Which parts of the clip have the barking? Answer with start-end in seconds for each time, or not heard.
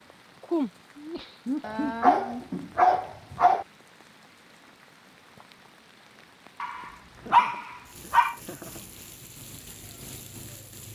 1.6-3.6, 6.6-8.3.